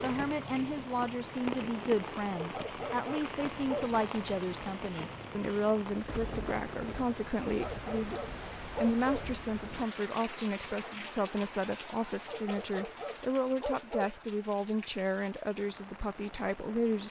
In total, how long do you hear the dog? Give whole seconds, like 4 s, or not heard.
5 s.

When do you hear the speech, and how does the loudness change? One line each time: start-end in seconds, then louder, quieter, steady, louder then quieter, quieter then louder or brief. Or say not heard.
0.0-17.0 steady.